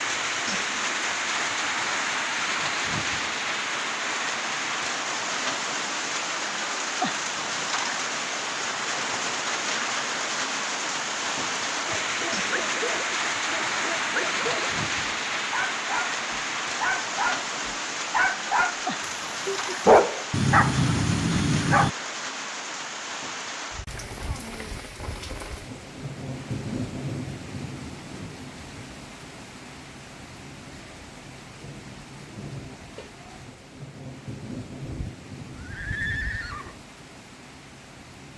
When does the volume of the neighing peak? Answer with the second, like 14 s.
36 s.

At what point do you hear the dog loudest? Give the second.
20 s.